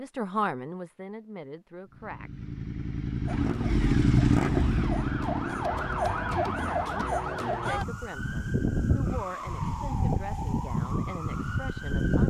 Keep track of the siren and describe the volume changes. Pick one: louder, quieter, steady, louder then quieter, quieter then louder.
louder.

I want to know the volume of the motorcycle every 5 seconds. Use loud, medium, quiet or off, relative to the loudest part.
loud, medium, off.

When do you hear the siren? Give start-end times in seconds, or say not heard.
3.2-12.2.